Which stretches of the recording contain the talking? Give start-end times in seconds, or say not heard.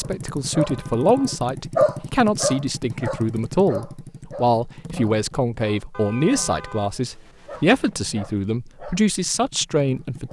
0.0-10.2.